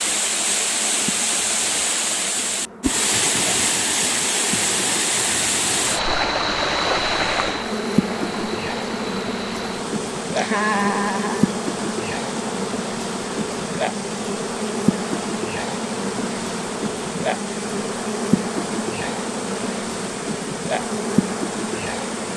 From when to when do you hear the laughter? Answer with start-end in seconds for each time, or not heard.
10.3-11.5.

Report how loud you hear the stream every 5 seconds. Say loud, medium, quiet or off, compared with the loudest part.
loud, loud, medium, medium, medium.